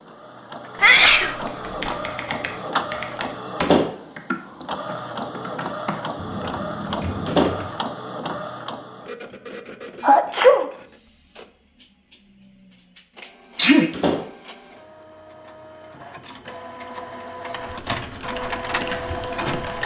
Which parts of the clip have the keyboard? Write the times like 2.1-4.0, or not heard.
1.4-7.7, 17.8-19.8.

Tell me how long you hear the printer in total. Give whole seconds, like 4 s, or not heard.
20 s.